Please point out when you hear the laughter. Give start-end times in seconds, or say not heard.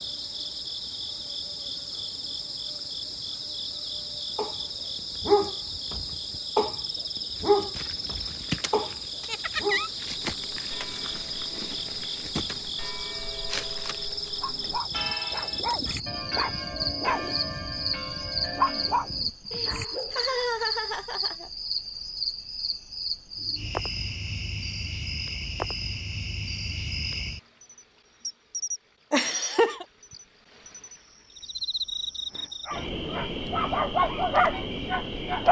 9.2-9.9, 19.4-21.5, 29.1-29.9.